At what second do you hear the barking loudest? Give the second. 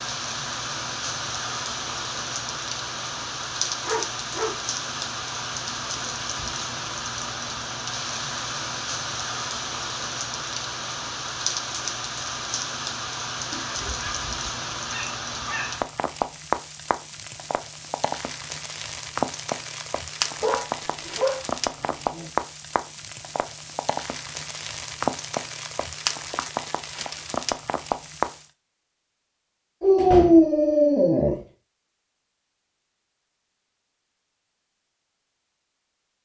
30 s.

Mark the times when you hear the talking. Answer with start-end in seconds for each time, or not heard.
not heard.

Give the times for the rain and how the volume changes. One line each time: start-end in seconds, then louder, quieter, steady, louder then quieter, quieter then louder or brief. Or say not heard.
0.0-28.4 steady.